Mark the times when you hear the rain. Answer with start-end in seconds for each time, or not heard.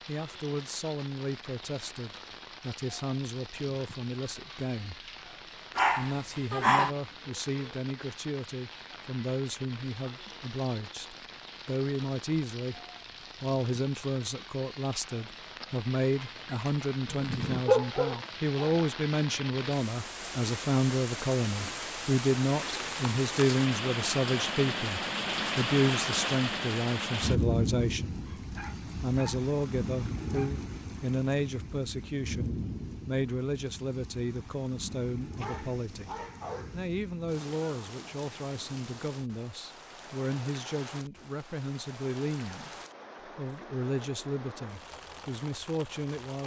0.0-46.4.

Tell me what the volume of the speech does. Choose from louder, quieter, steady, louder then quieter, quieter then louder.
louder then quieter.